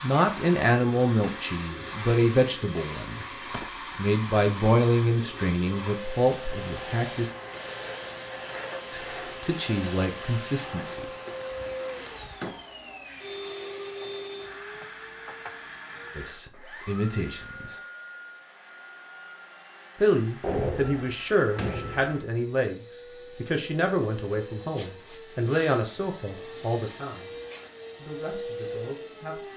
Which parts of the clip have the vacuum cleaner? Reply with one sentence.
You can hear the vacuum cleaner from 0.0 to 29.5 s.